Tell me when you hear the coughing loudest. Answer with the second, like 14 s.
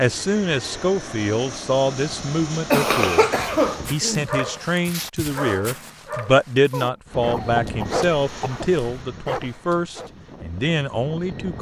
3 s.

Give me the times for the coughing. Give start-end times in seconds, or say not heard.
2.7-4.2, 6.7-8.7.